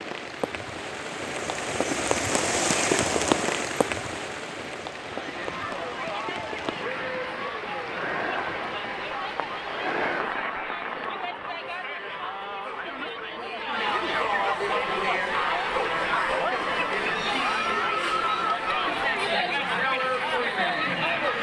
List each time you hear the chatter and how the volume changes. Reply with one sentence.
The chatter can be heard from 5.0 to 21.3 s, getting louder.